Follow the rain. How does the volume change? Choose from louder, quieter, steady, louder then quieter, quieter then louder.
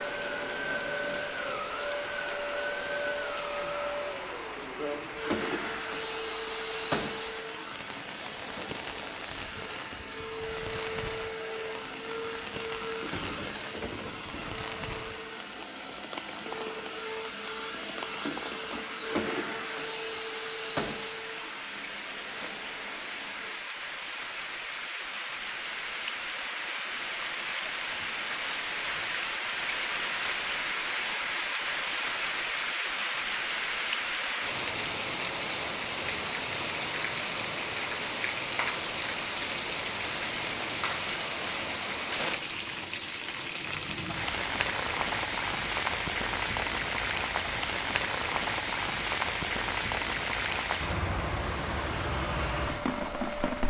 louder.